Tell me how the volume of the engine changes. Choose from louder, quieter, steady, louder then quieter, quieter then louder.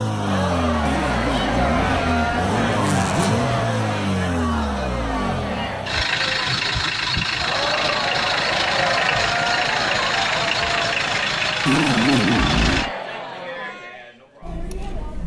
steady.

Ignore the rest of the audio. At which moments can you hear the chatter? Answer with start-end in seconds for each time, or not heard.
0.0-15.2.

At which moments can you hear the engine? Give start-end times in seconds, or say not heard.
0.0-12.9.